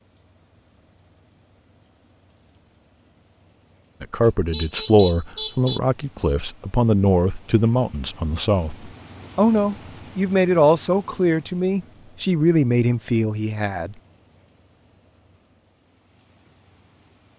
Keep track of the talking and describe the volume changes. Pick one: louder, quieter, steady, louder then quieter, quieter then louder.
steady.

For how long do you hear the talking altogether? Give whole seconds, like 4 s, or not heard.
10 s.